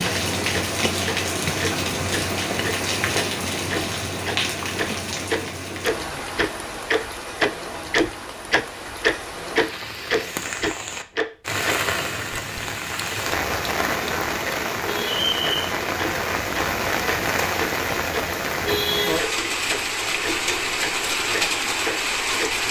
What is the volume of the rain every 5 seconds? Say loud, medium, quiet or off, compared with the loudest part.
loud, medium, loud, loud, loud.